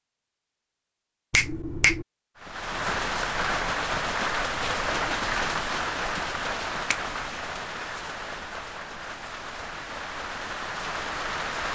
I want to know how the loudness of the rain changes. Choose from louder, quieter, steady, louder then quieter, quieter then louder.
quieter.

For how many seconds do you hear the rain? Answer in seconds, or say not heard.
9 s.